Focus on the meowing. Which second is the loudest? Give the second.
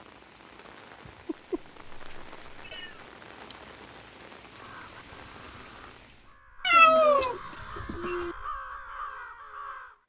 7 s.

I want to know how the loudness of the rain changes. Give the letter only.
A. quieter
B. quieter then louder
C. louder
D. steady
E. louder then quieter
D.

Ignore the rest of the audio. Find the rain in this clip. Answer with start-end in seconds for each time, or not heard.
0.0-6.4.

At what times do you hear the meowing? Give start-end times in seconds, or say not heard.
1.2-3.0, 6.6-8.3.